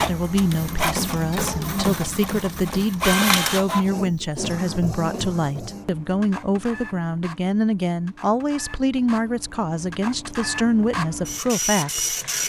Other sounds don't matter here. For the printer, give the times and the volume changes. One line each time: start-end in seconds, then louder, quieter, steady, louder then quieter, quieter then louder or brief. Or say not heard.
0.0-12.4 quieter then louder.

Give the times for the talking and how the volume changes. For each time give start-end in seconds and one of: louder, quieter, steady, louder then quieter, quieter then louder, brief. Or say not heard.
0.0-12.2 steady.